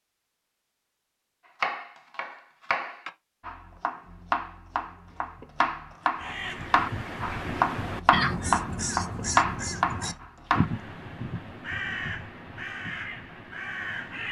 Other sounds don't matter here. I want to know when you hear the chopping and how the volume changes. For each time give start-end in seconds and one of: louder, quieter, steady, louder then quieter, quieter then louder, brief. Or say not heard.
1.6-10.7 louder.